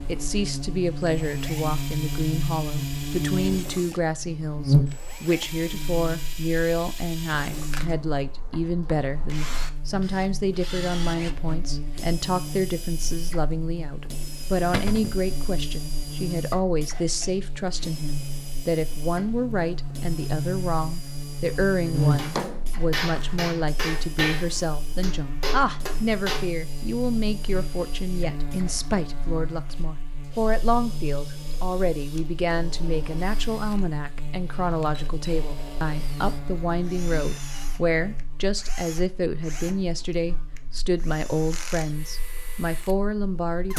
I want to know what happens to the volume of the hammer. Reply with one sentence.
The volume of the hammer goes down, then up.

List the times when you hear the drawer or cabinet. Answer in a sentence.
The drawer or cabinet can be heard from 14.7 to 15.2 s and from 21.9 to 23.4 s.